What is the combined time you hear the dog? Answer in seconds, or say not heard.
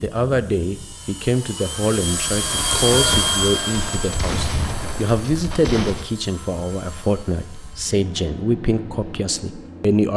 not heard.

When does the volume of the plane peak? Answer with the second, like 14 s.
3 s.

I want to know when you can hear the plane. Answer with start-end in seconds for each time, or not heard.
0.0-10.1.